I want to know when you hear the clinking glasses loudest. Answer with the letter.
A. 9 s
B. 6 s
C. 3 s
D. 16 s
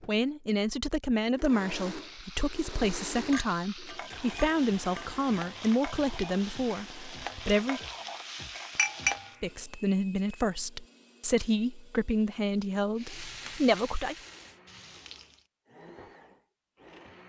A.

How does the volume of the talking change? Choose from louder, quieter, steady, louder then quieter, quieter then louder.
steady.